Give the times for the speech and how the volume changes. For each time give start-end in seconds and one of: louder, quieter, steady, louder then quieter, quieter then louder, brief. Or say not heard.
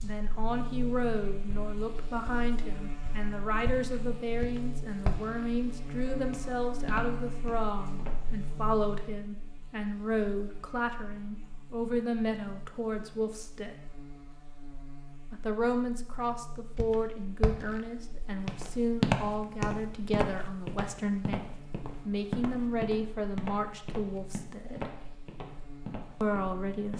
0.0-13.8 steady
15.3-24.9 steady
26.2-26.9 brief.